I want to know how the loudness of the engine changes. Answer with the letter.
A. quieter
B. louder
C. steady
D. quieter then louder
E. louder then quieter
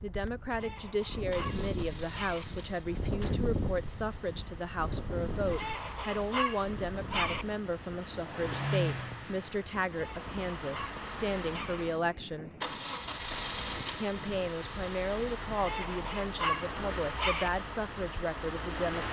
B.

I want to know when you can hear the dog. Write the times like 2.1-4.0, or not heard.
0.5-2.5, 5.5-7.5, 9.8-11.8, 15.6-17.5.